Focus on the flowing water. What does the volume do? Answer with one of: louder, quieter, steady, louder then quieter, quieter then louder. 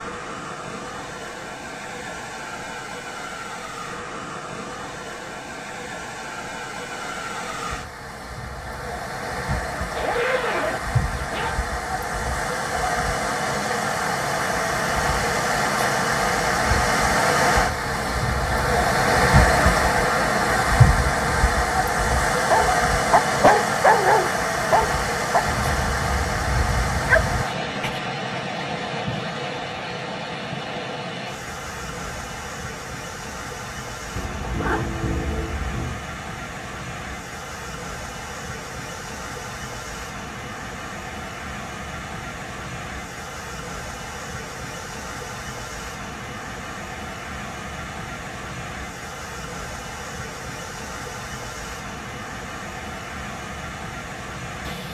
louder then quieter.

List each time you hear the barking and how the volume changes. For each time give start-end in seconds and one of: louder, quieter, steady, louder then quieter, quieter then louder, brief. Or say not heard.
22.4-28.0 quieter then louder.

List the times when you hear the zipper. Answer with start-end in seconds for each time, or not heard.
9.9-11.6, 34.1-36.0.